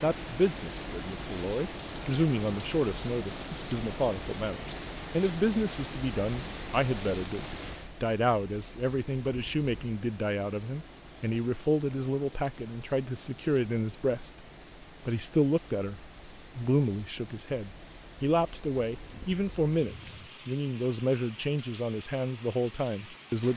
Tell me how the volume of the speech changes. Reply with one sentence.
The volume of the speech stays about the same.